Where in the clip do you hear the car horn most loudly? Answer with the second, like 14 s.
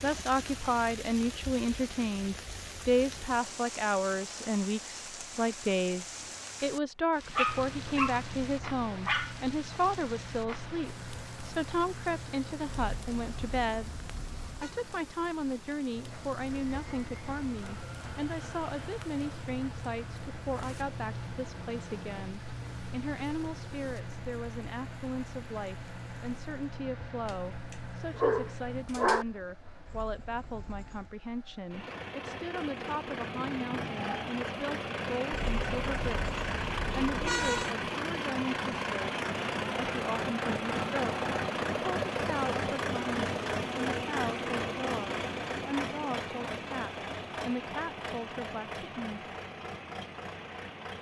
37 s.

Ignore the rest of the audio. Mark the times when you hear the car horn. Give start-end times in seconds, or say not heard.
12.8-14.7, 29.9-31.1, 35.3-37.8.